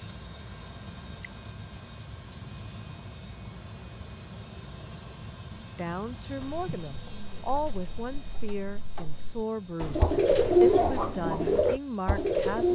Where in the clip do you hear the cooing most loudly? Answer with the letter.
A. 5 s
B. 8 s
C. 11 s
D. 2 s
C.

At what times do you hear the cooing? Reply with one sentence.
The cooing can be heard from 6.4 to 12.7 s.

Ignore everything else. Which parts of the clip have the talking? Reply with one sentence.
The talking can be heard from 5.8 to 12.7 s.